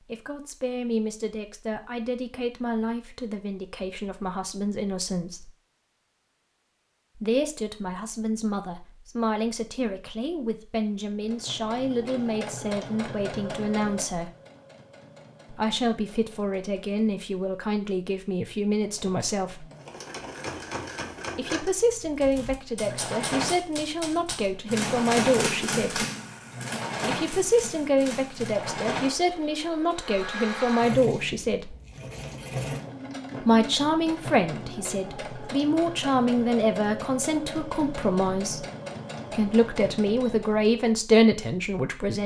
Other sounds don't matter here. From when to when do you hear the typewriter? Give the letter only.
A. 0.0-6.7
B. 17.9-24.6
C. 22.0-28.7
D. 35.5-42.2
C.